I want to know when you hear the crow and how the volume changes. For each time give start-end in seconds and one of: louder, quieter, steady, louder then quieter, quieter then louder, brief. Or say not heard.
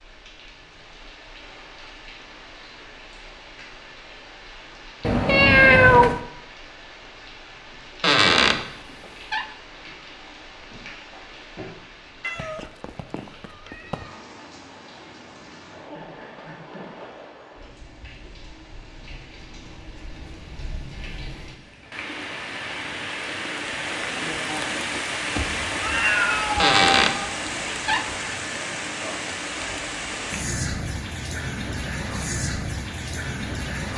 not heard.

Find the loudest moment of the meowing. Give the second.
6 s.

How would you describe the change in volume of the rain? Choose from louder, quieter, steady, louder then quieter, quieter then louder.
louder.